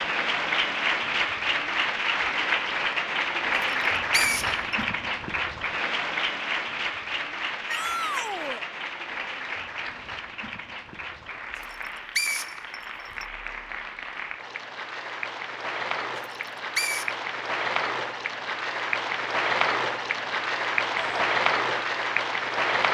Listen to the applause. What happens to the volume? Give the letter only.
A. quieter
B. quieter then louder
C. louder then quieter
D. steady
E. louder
B.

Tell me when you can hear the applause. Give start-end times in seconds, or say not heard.
0.0-22.9.